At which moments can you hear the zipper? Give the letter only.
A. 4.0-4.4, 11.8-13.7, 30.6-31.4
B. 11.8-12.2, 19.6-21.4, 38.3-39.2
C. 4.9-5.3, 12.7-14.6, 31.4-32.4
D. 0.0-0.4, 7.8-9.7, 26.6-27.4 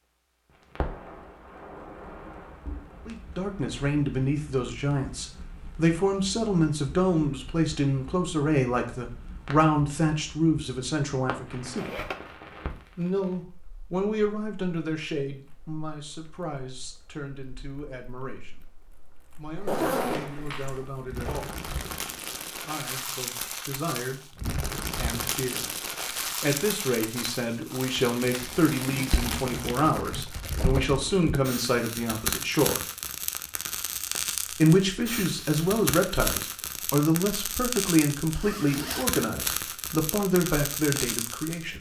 B.